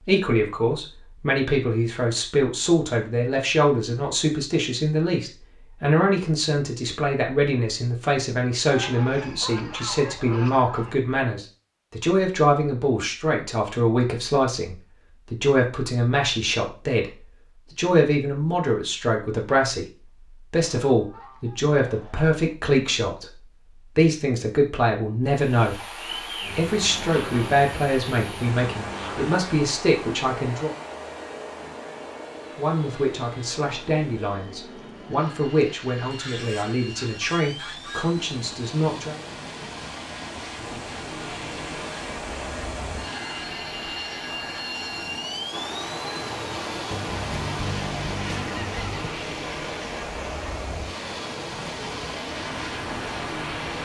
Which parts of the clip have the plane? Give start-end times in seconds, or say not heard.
26.4-53.8.